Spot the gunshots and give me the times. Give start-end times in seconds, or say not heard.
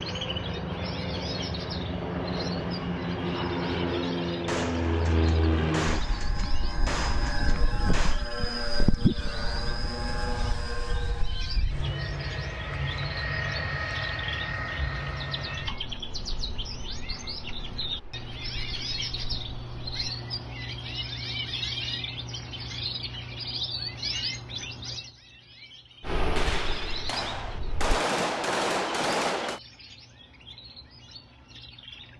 4.5-8.2, 26.4-29.6.